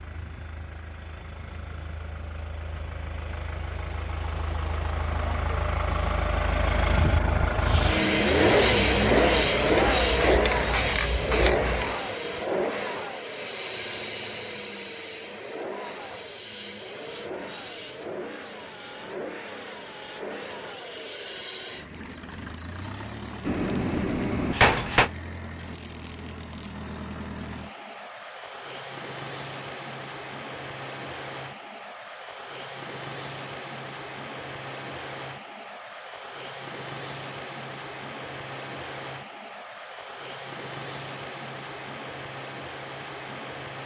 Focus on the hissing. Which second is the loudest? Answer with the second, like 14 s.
11 s.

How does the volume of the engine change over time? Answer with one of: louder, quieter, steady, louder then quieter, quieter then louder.
quieter.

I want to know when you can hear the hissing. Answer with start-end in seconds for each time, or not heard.
7.5-12.0.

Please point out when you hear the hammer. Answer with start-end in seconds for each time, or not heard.
23.4-25.1.